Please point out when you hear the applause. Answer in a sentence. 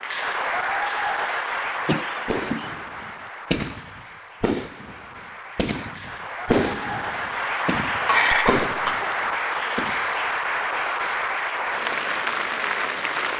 You can hear the applause from 0.0 to 13.3 s.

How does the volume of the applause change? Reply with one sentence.
The loudness of the applause goes down, then up.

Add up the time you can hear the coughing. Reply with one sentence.
The coughing can be heard for 2 seconds in total.